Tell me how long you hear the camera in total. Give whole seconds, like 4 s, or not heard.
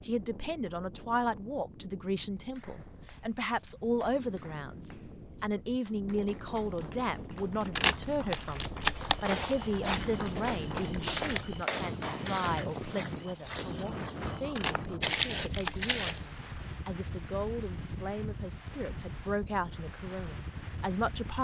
3 s.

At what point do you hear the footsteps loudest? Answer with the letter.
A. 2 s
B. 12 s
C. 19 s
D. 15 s
D.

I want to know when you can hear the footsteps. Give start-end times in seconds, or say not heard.
8.9-16.5.